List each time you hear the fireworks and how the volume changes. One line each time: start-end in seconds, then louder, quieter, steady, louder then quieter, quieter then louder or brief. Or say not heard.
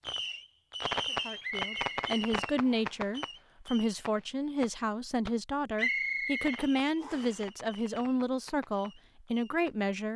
0.0-9.8 quieter.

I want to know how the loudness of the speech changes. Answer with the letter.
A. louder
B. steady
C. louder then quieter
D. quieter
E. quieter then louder
B.